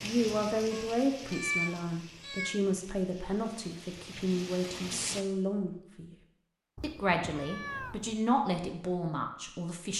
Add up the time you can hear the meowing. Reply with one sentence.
You can hear the meowing for 3 seconds altogether.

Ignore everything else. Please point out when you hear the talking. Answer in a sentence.
You can hear the talking from 0.0 to 6.1 s and from 6.8 to 9.9 s.